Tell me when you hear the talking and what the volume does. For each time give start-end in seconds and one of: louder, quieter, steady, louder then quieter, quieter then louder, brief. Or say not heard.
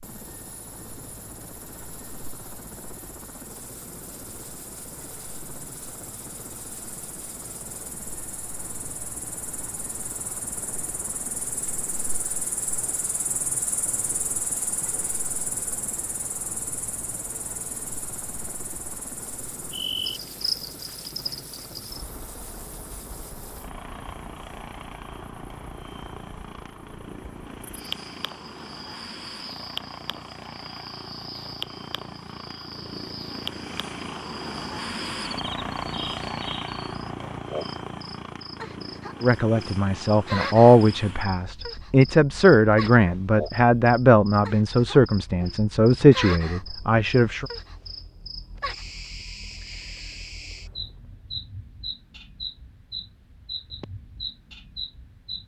39.2-47.5 steady.